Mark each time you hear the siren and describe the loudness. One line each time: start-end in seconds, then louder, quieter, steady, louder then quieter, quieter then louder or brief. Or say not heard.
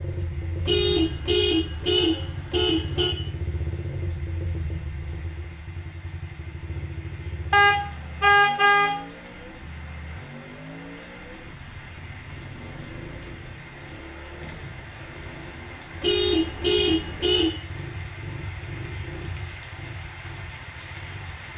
not heard.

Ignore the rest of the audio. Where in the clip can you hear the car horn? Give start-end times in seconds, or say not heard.
0.7-3.1, 7.5-8.9, 16.0-17.5.